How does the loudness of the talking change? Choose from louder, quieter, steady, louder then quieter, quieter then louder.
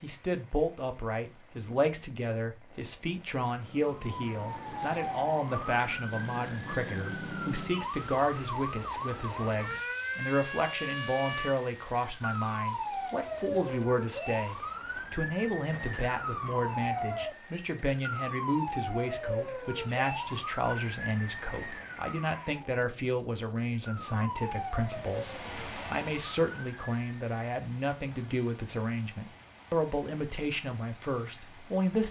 steady.